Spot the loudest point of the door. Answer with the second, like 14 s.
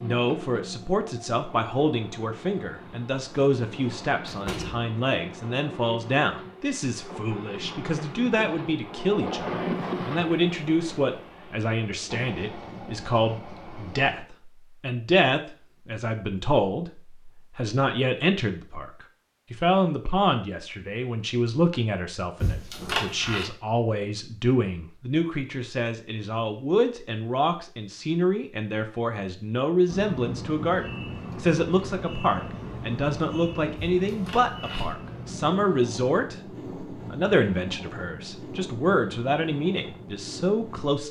23 s.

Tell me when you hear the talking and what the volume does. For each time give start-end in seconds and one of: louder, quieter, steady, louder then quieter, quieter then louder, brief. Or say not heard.
0.0-41.0 steady.